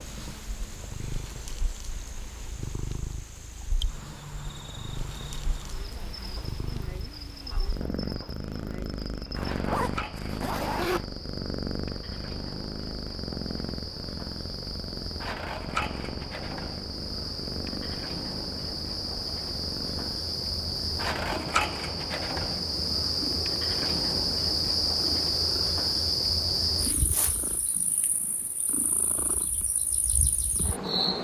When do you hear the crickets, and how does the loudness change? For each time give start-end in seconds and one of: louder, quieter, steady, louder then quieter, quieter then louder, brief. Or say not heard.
0.0-31.1 louder.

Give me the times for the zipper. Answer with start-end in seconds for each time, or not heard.
9.3-11.1.